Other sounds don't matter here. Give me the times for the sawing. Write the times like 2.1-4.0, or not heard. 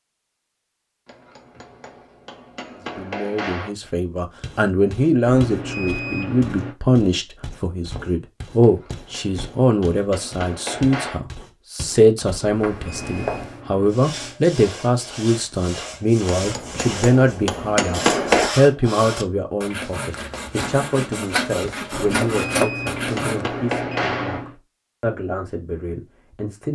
13.8-23.4.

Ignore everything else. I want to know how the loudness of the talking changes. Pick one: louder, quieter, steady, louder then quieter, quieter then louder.
quieter.